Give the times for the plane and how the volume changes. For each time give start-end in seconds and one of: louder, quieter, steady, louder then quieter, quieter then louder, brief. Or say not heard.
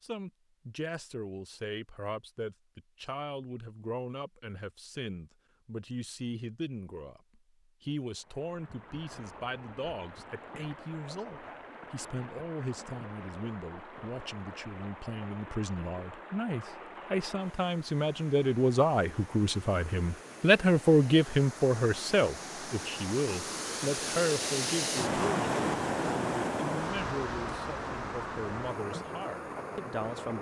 not heard.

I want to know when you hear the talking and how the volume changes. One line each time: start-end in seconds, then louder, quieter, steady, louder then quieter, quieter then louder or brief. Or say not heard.
0.0-30.3 louder then quieter.